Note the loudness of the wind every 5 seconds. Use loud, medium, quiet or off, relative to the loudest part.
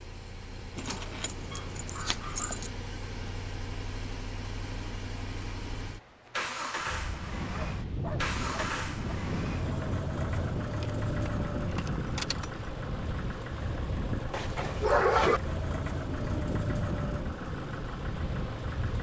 off, loud, loud, loud.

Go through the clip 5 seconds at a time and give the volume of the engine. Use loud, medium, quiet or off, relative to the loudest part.
medium, loud, loud, loud.